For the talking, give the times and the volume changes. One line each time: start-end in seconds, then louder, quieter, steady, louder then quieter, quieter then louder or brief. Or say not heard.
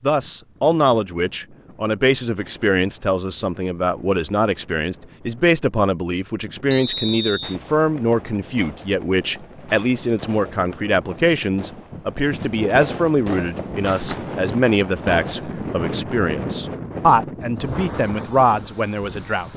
0.0-19.5 steady.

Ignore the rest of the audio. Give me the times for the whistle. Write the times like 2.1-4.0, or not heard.
6.7-7.5.